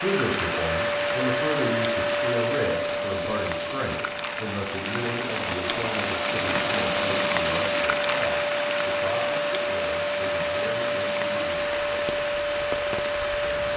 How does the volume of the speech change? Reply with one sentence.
The volume of the speech goes down.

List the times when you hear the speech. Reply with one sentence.
The speech can be heard from 0.0 to 11.8 s.